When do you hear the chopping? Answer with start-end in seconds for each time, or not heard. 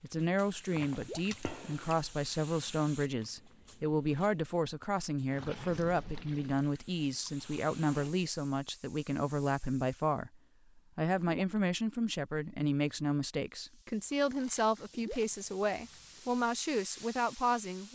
not heard.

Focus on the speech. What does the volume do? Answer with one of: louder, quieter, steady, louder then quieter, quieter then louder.
steady.